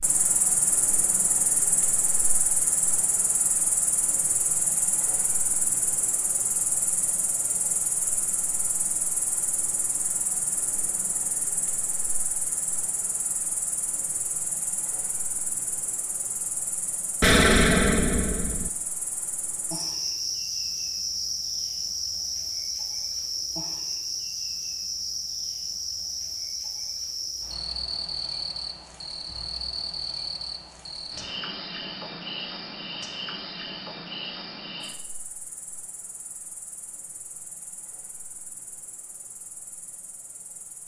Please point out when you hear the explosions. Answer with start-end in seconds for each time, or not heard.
17.2-18.7.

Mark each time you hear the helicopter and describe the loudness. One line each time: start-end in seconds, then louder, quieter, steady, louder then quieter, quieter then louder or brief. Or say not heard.
not heard.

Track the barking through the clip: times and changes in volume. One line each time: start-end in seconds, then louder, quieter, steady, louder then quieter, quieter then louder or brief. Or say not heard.
not heard.